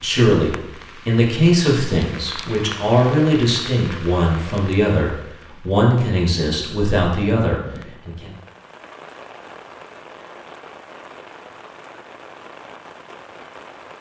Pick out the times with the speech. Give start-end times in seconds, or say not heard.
0.0-8.3.